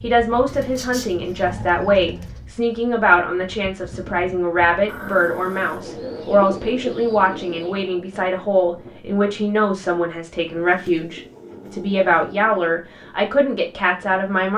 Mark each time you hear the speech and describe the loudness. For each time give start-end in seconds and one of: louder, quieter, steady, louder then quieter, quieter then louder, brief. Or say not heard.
0.0-14.5 steady.